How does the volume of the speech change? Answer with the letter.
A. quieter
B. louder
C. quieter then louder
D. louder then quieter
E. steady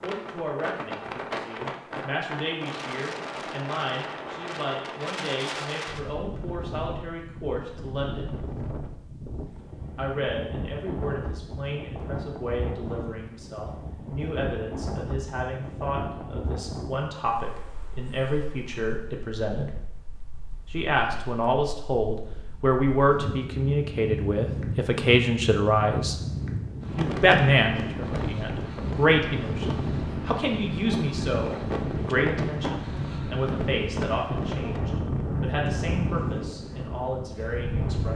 D.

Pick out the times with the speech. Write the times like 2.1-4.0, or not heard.
0.0-8.3, 9.9-19.7, 20.7-26.1, 26.9-38.1.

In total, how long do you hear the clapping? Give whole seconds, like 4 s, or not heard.
not heard.